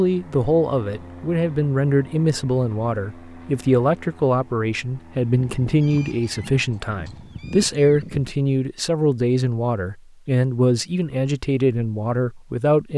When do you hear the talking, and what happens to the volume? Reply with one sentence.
The talking can be heard from 0.0 to 12.9 s, at a steady volume.